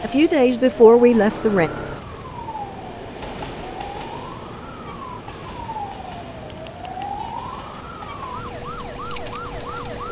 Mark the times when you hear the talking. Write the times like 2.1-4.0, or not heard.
0.0-1.7.